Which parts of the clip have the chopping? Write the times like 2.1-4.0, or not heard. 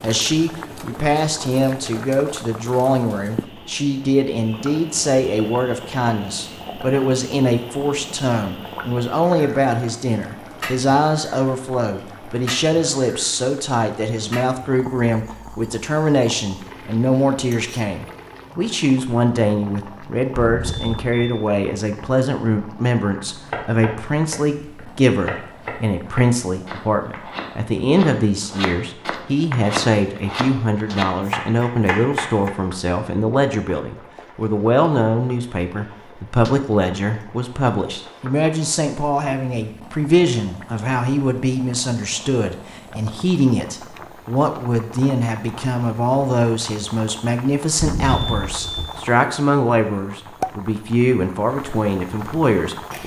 23.4-32.5.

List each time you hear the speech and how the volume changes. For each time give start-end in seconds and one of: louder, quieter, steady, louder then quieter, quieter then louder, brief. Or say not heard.
0.0-53.0 steady.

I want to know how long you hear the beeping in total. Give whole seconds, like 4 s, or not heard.
2 s.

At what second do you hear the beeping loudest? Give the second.
48 s.